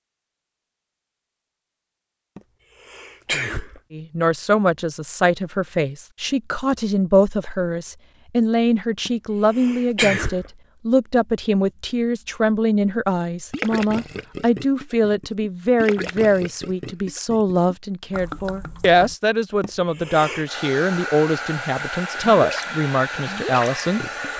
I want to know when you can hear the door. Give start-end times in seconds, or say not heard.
not heard.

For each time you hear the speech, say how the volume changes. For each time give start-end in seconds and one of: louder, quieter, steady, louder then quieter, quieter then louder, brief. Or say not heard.
3.9-24.3 steady.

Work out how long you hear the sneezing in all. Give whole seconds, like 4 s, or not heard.
4 s.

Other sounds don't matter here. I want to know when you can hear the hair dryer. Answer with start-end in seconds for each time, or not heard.
20.4-24.3.